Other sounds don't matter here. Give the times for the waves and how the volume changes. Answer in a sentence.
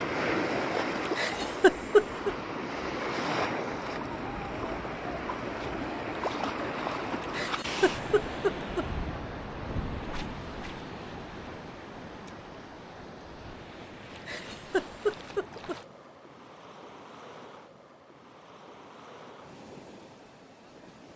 The waves can be heard from 0.0 to 21.1 s, getting quieter.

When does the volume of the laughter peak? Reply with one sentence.
The loudest moment of the laughter is at 2 seconds.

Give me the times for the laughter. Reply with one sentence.
You can hear the laughter from 1.1 to 2.3 s, from 7.2 to 8.8 s and from 14.2 to 15.8 s.